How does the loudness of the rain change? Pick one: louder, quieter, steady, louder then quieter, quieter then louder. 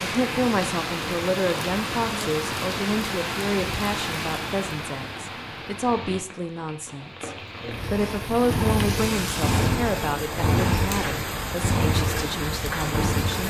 quieter then louder.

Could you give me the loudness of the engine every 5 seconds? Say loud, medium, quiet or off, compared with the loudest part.
off, loud, loud.